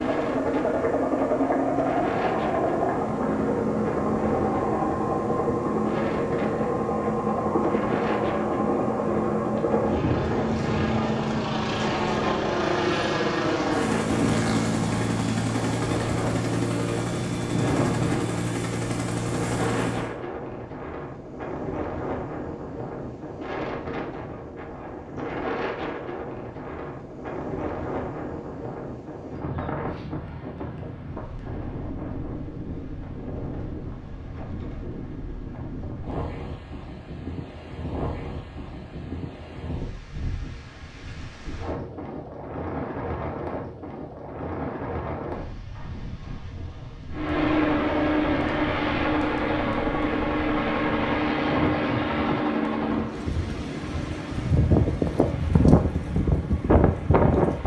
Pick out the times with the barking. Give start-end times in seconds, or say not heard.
not heard.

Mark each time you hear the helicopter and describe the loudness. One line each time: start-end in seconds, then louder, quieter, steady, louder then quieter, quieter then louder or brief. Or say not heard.
0.0-20.1 steady
47.1-57.6 quieter.